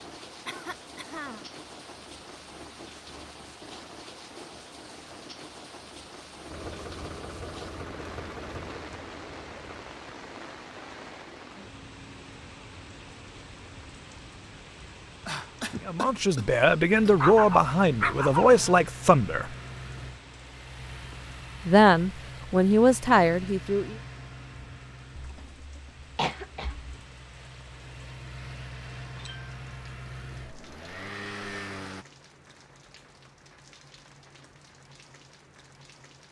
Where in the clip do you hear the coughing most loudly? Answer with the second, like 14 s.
26 s.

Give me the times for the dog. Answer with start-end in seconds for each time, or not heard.
17.2-18.8.